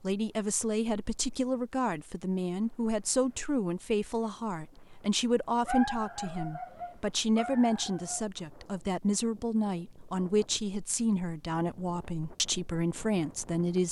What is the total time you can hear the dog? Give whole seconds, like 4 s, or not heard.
3 s.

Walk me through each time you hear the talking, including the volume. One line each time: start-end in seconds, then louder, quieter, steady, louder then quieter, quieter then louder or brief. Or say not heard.
0.0-13.8 steady.